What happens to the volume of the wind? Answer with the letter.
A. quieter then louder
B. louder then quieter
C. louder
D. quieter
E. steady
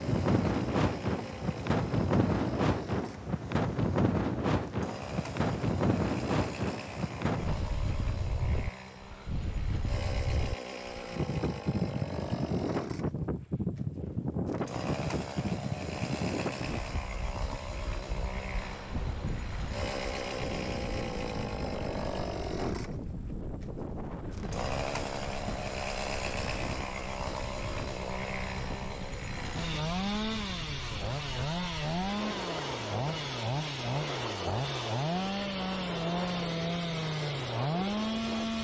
D.